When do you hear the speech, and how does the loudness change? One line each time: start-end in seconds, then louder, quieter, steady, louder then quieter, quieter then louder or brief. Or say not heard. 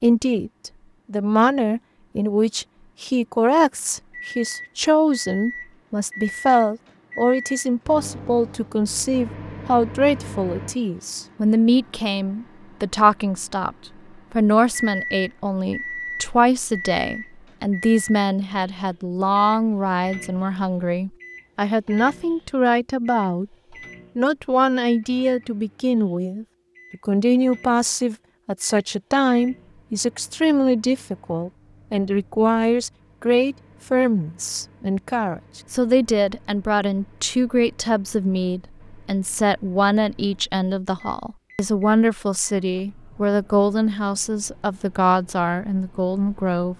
0.0-23.4 steady
24.1-46.7 steady.